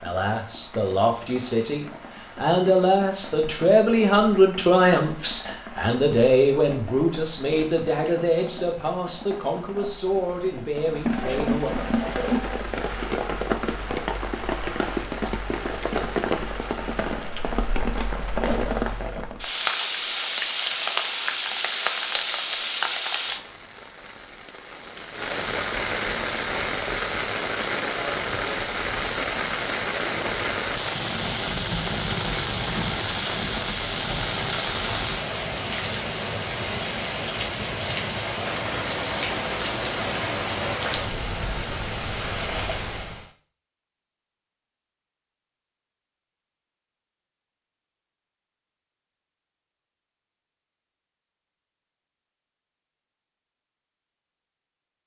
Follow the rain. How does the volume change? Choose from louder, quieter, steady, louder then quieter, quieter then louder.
louder.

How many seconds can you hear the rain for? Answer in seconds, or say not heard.
43 s.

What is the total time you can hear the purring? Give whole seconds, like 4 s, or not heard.
not heard.